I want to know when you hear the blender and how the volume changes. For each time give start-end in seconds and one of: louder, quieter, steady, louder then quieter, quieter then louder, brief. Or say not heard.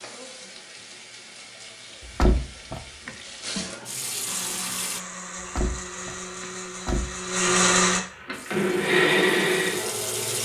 4.2-10.4 louder.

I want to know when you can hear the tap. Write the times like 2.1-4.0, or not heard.
0.0-5.0, 8.3-10.4.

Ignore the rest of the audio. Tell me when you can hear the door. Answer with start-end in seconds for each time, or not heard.
2.0-3.1, 5.4-7.2.